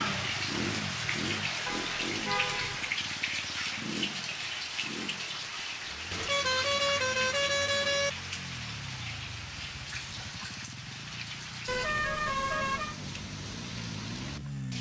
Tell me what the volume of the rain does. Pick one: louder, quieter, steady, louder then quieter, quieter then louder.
quieter.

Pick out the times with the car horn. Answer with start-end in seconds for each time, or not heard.
1.6-2.9, 6.1-8.1, 11.7-12.9.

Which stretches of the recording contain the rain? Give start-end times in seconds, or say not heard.
0.0-14.7.